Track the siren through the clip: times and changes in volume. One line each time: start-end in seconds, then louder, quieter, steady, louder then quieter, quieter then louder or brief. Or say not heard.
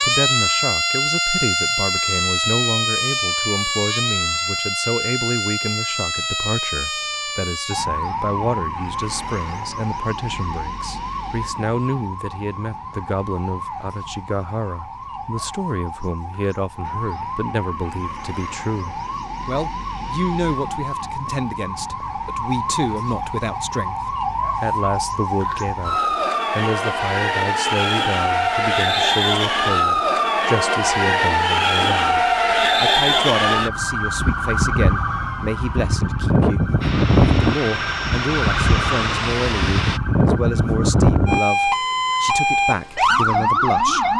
0.0-44.1 quieter then louder.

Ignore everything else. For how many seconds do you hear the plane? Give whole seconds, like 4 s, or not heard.
3 s.